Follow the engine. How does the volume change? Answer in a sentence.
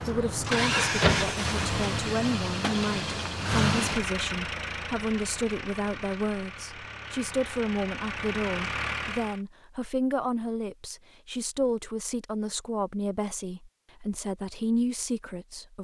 The loudness of the engine goes down, then up.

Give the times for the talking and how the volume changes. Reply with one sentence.
The talking can be heard from 0.0 to 15.8 s, at a steady volume.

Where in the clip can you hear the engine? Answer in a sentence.
The engine can be heard from 0.0 to 9.4 s.